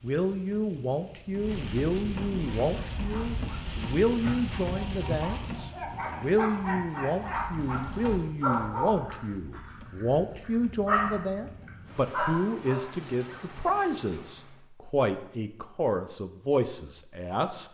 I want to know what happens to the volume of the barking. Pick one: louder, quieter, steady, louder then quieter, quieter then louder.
louder.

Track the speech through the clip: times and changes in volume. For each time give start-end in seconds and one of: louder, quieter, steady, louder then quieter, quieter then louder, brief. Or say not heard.
0.0-17.6 steady.